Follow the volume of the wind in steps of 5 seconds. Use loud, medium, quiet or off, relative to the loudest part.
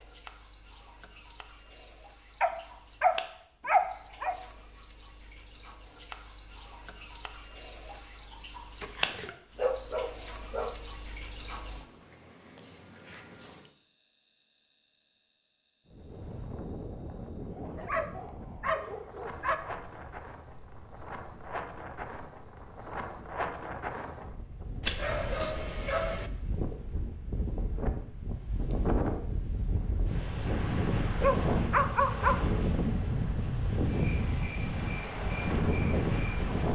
off, off, off, quiet, medium, medium, loud, loud.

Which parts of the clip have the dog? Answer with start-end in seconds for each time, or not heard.
2.4-4.3, 8.8-10.8, 17.6-19.6, 24.8-26.3, 31.2-32.5.